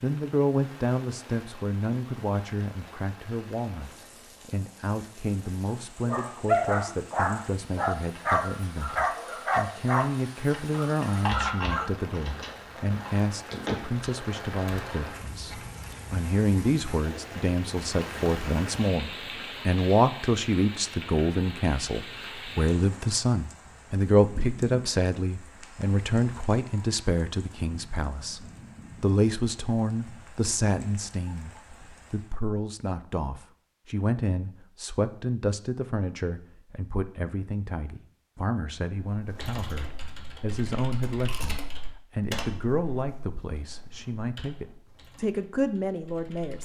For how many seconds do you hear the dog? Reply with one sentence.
The dog can be heard for 6 seconds in total.